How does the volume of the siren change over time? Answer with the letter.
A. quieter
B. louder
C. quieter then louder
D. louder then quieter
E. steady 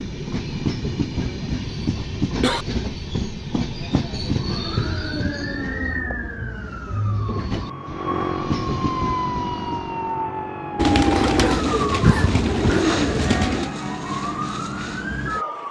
E.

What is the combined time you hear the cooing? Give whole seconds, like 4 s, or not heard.
3 s.